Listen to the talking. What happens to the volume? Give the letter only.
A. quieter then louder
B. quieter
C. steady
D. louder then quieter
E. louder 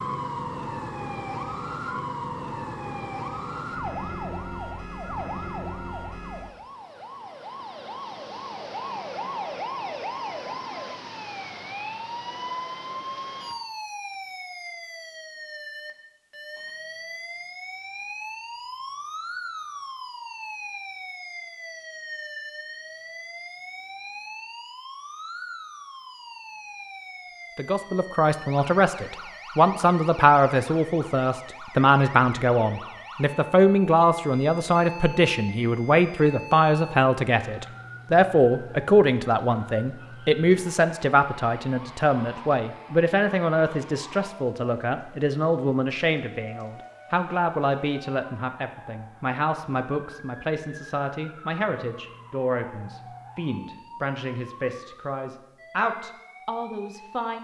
B.